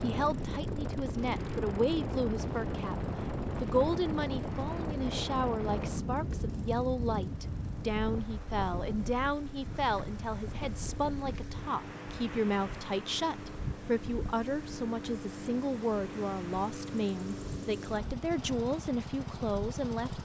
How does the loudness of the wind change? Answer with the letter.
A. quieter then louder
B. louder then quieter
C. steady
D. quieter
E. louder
D.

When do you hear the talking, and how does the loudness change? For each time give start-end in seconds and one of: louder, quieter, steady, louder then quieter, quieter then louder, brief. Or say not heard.
0.0-20.1 steady.